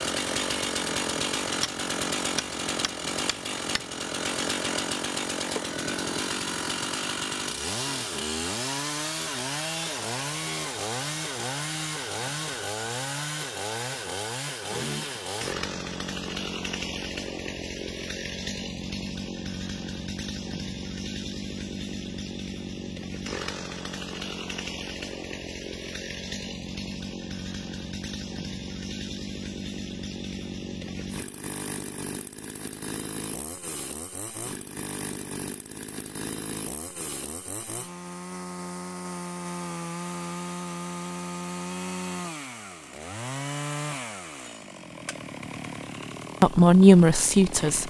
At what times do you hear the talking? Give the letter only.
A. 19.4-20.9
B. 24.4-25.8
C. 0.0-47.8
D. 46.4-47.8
D.